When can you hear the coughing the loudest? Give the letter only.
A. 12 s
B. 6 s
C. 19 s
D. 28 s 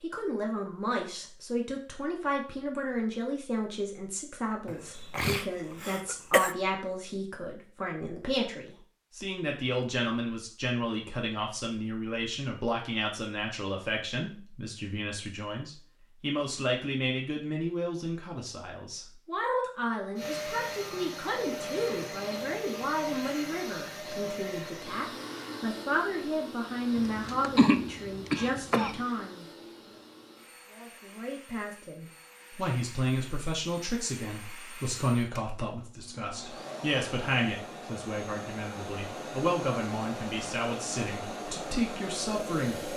D.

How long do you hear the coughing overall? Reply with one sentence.
The coughing can be heard for 4 seconds in total.